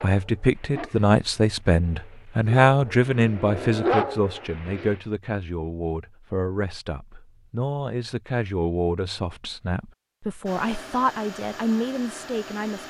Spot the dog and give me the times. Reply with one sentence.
You can hear the dog from 0.0 to 5.0 s.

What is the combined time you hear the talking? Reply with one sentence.
You can hear the talking for 13 seconds altogether.